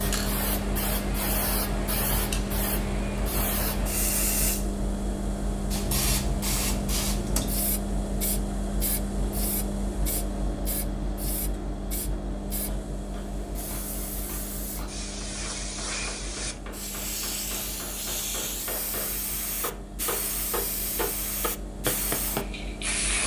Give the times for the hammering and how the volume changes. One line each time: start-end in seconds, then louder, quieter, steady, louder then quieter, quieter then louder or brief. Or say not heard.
12.7-22.5 louder.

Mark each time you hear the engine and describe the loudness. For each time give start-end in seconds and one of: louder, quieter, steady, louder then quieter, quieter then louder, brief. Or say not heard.
0.0-23.2 quieter.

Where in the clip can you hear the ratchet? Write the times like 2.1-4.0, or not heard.
not heard.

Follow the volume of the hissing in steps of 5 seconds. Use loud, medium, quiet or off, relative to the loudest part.
loud, loud, medium, loud, loud.